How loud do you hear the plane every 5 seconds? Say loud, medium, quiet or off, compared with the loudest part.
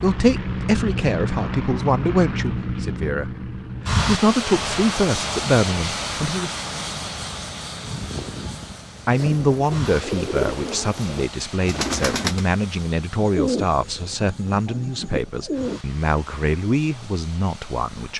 loud, loud, quiet, quiet.